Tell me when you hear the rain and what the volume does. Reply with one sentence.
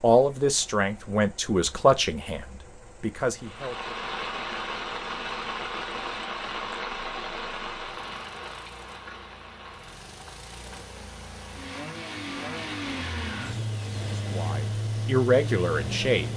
The rain can be heard from 3.4 to 16.3 s, getting quieter.